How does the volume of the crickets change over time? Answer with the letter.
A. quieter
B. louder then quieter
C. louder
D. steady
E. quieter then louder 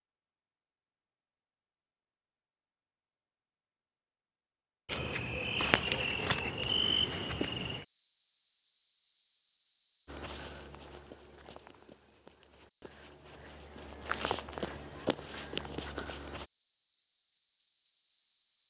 E.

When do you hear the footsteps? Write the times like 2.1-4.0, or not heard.
10.1-16.4.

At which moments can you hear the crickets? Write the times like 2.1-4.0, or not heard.
4.8-18.6.